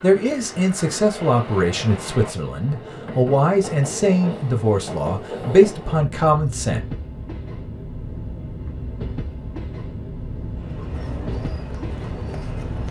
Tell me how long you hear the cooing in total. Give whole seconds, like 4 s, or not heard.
2 s.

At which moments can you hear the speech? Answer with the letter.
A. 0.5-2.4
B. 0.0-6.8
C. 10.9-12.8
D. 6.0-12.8
B.